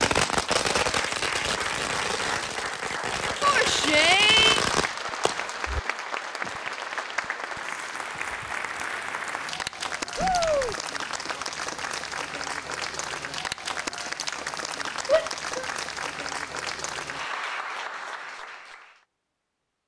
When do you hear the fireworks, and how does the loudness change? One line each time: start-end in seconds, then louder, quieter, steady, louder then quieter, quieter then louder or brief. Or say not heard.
0.0-5.8 quieter then louder.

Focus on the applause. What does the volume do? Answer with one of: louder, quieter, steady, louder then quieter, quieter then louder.
steady.